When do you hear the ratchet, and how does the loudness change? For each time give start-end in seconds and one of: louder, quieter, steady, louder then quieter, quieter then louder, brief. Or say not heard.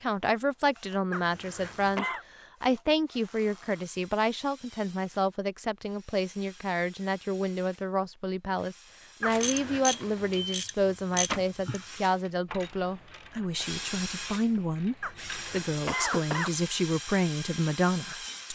9.4-15.6 quieter.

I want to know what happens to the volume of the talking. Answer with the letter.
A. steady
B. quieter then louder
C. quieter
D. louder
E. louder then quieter
A.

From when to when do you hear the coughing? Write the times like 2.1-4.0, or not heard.
1.1-2.2, 9.2-9.8, 15.0-16.6.